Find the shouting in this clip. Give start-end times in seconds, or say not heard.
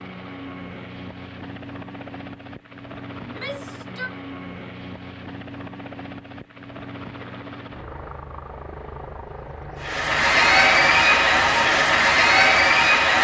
3.2-4.1.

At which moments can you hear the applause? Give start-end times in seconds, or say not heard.
9.8-13.2.